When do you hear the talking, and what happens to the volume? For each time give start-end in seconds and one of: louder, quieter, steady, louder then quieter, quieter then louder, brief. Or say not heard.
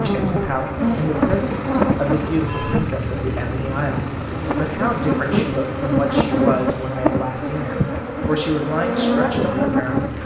0.0-10.2 steady.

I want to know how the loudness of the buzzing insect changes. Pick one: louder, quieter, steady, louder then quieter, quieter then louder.
quieter then louder.